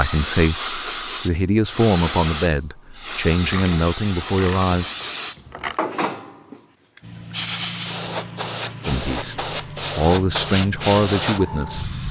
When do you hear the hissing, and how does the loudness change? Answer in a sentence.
The hissing can be heard from 0.0 to 12.0 s, at a steady volume.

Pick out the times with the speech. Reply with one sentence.
The speech can be heard from 0.0 to 4.9 s and from 8.8 to 11.9 s.